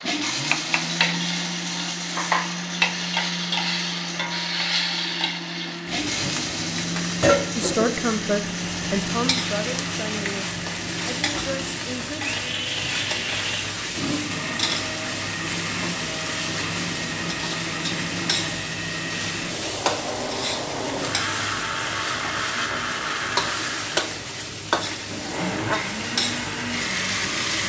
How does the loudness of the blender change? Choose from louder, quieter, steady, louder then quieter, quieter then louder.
steady.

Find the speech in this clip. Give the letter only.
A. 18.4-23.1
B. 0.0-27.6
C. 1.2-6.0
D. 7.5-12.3
D.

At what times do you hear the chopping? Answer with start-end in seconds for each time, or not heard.
not heard.